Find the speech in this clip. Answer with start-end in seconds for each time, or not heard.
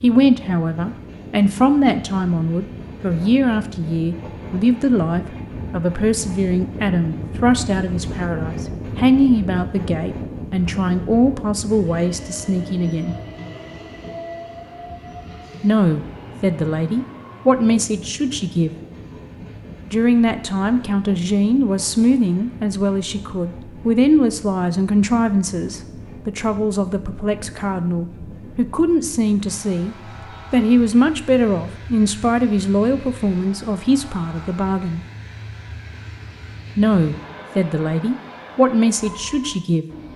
0.0-13.2, 15.6-18.7, 19.9-35.0, 36.8-39.9.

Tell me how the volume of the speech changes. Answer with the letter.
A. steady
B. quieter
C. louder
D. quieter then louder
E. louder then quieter
A.